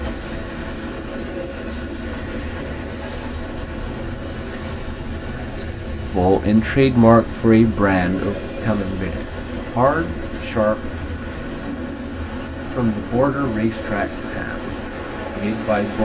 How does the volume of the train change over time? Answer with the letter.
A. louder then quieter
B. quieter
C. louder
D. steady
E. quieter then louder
D.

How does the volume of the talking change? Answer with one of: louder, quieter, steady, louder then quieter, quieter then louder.
quieter.